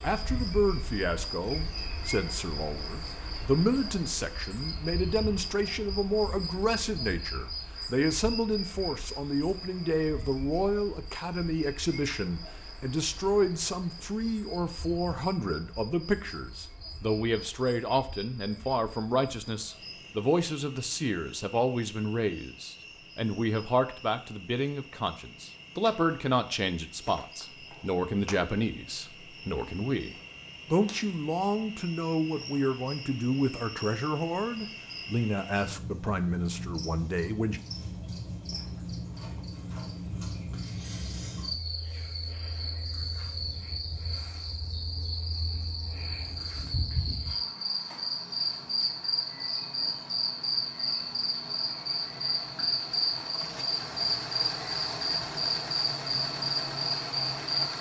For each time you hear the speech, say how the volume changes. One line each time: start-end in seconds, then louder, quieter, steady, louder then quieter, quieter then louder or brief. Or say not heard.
0.0-37.6 steady.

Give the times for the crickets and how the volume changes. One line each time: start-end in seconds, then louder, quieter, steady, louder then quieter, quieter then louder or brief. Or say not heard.
0.0-57.7 quieter then louder.